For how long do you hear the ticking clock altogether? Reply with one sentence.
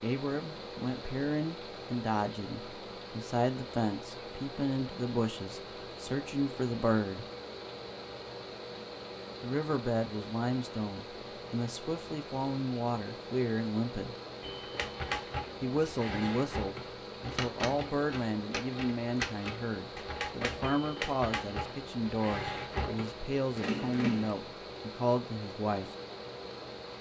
You can't hear the ticking clock here.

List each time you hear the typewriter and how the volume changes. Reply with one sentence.
The typewriter can be heard from 14.4 to 24.4 s, at a steady volume.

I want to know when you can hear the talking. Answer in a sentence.
The talking can be heard from 0.0 to 7.2 s, from 9.4 to 14.2 s and from 15.6 to 25.9 s.